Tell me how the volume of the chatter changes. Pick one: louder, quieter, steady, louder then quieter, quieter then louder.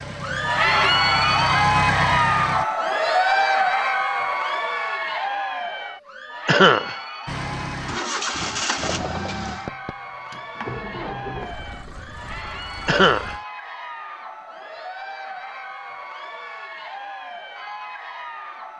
quieter.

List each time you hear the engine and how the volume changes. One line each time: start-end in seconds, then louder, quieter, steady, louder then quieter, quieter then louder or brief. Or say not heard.
0.0-2.6 brief
7.2-13.4 quieter.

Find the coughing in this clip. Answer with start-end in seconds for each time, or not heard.
6.5-7.0, 12.8-13.3.